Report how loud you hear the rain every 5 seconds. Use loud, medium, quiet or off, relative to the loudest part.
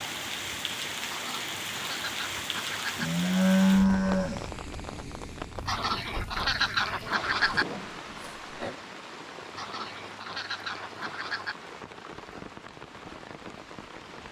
loud, medium, medium.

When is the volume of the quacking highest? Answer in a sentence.
The loudest moment of the quacking is at 7 seconds.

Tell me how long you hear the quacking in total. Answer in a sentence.
You can hear the quacking for 6 seconds altogether.